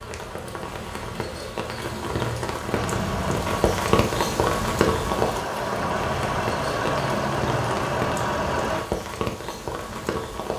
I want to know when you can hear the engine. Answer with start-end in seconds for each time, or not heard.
2.7-8.8.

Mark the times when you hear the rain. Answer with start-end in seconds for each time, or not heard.
0.0-10.5.